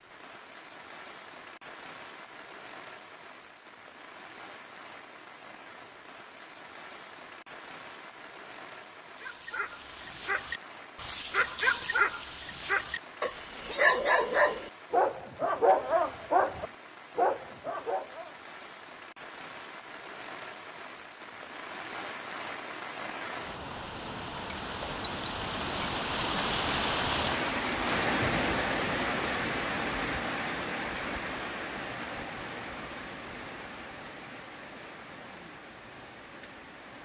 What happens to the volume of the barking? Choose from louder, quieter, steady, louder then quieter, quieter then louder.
louder.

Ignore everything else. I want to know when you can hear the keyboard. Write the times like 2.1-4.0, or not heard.
not heard.